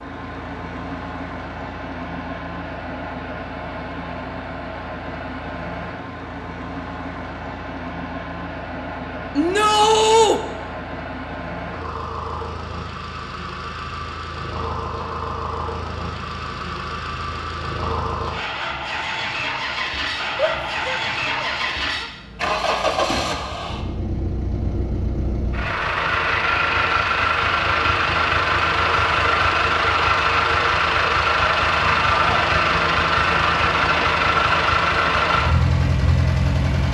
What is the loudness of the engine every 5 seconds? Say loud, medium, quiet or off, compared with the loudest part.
quiet, quiet, quiet, medium, medium, loud, loud, loud.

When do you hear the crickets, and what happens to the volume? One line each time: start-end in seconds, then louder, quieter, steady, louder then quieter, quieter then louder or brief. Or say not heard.
not heard.